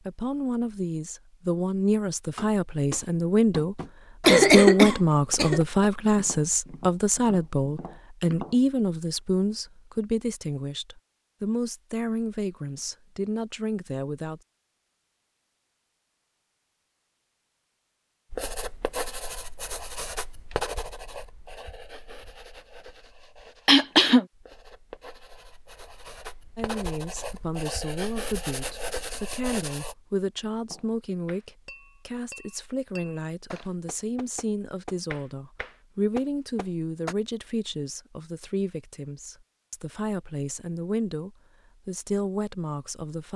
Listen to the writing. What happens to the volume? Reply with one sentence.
The volume of the writing goes down, then up.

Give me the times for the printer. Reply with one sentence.
The printer can't be heard in this clip.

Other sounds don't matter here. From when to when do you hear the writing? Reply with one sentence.
You can hear the writing from 18.3 to 29.9 s.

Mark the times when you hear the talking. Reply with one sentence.
You can hear the talking from 0.0 to 14.4 s and from 26.6 to 43.3 s.